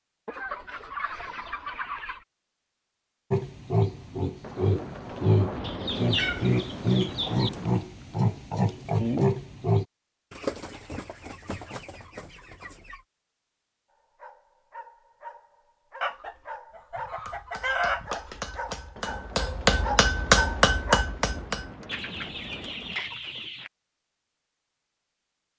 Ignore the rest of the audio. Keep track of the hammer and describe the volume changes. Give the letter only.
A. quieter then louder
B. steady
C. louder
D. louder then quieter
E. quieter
C.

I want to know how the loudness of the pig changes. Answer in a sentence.
The loudness of the pig stays about the same.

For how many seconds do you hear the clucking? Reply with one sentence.
You can hear the clucking for 11 seconds altogether.